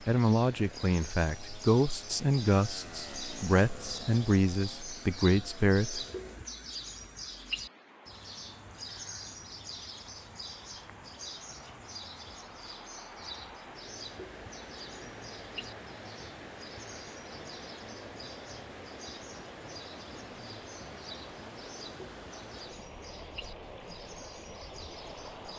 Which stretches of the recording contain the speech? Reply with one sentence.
The speech can be heard from 0.1 to 6.0 s.